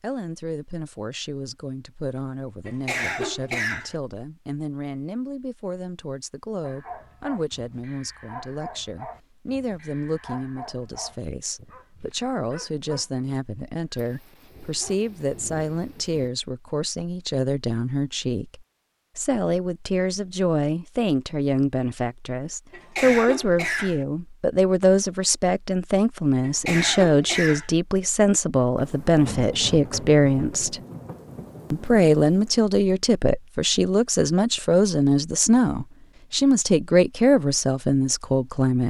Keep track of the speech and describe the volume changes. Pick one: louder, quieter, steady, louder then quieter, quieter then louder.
louder.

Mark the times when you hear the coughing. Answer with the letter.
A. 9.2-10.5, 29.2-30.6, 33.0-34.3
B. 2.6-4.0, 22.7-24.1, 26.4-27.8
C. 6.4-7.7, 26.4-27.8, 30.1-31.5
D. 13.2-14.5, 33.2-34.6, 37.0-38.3
B.